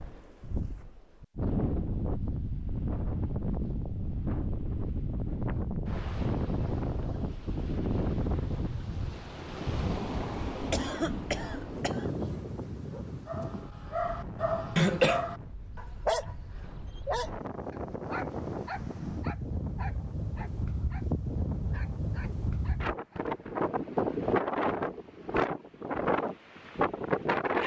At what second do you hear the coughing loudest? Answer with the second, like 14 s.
15 s.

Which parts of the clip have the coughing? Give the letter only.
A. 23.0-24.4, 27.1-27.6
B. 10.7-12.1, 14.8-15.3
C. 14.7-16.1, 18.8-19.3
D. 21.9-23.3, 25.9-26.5
B.